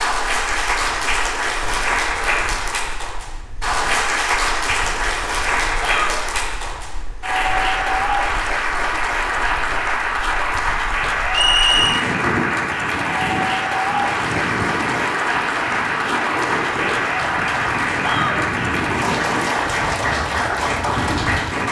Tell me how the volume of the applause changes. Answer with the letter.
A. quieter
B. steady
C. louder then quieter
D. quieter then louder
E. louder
B.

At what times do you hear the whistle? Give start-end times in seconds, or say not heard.
11.3-12.1.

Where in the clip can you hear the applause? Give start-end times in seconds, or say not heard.
0.0-21.6.